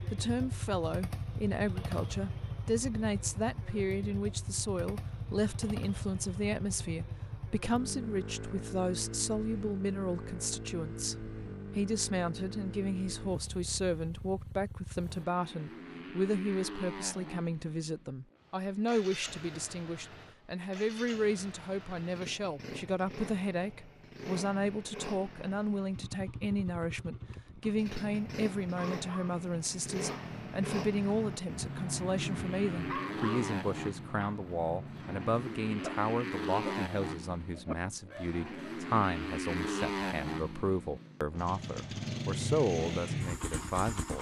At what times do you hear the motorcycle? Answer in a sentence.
You can hear the motorcycle from 0.0 to 44.1 s.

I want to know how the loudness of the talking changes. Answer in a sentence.
The loudness of the talking stays about the same.